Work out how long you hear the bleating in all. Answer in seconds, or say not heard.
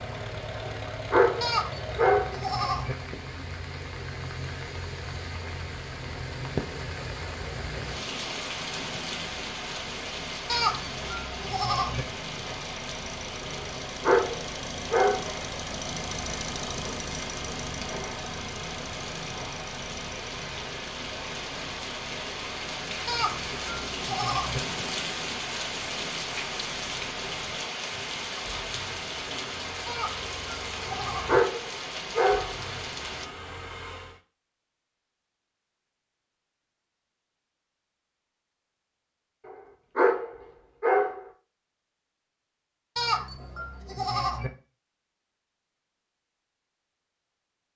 8 s.